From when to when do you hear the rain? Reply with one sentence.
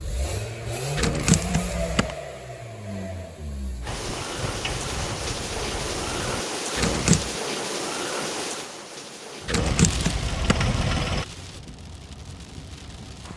You can hear the rain from 3.8 to 13.3 s.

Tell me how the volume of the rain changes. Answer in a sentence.
The volume of the rain goes down.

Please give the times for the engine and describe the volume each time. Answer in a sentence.
You can hear the engine from 0.0 to 6.5 s, getting quieter; and briefly from 9.6 to 11.2 s.